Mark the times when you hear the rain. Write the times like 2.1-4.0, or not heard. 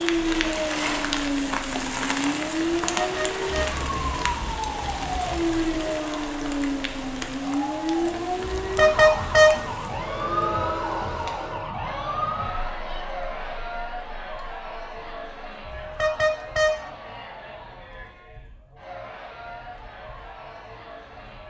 0.0-11.7.